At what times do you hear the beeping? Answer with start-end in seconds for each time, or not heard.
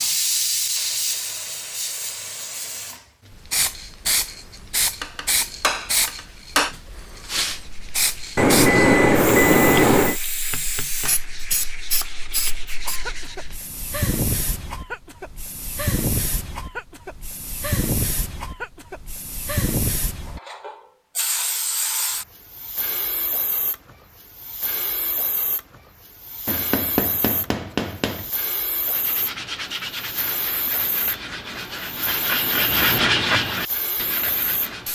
8.3-10.2.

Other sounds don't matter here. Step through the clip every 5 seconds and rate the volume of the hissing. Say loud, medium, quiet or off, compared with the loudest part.
loud, loud, loud, loud, medium, medium, medium.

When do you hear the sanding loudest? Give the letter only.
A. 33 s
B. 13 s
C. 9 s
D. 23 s
A.